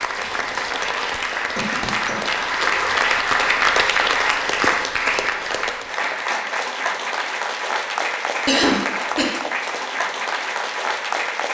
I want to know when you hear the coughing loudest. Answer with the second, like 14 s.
9 s.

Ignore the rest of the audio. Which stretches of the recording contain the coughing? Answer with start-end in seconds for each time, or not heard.
1.1-2.9, 8.4-9.3.